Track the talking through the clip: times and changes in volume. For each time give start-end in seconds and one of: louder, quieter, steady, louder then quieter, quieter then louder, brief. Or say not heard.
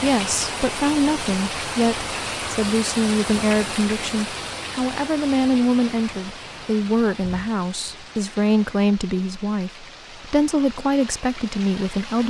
0.0-12.2 steady.